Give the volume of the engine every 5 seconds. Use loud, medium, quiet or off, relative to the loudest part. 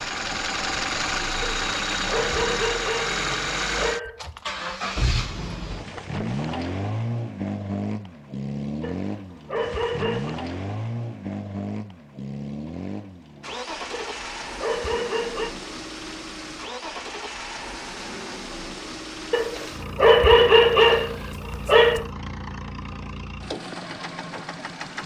loud, loud, medium, medium, medium.